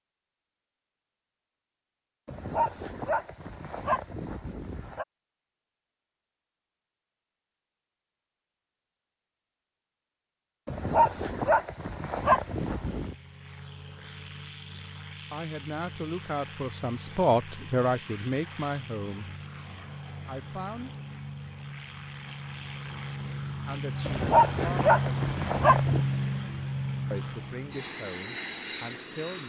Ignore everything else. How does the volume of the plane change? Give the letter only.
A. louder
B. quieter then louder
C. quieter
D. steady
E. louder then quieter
A.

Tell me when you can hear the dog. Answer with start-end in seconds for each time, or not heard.
2.2-5.0, 10.7-13.2, 24.1-26.0.